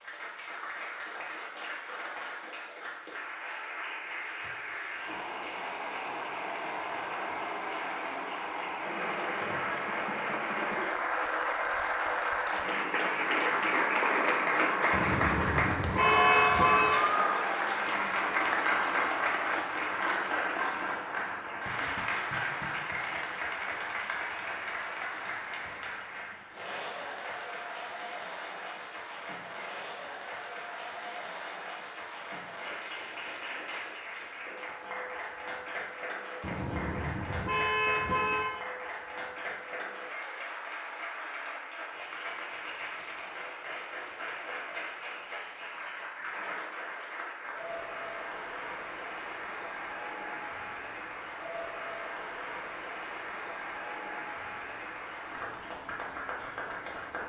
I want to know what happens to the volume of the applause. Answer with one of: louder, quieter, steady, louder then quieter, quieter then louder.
louder then quieter.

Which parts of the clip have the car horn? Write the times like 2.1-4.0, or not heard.
14.9-16.9, 36.4-38.5.